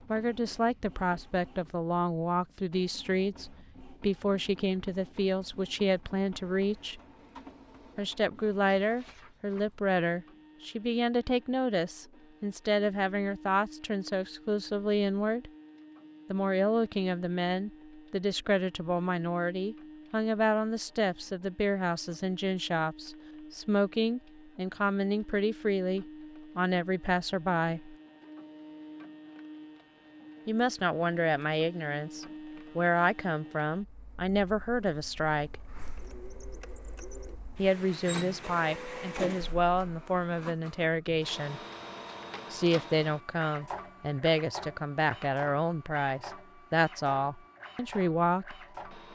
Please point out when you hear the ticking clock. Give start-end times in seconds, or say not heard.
not heard.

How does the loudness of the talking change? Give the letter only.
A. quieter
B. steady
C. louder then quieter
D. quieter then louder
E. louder
B.